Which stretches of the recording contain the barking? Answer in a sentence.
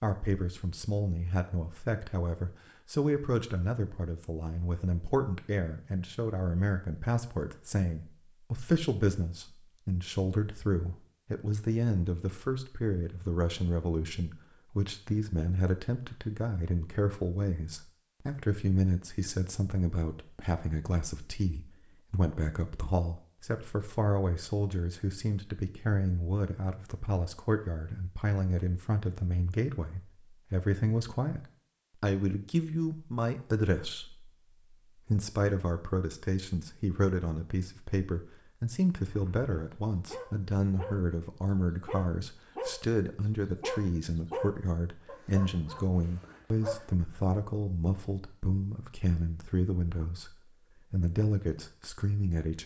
You can hear the barking from 39.0 to 41.1 s and from 41.7 to 46.9 s.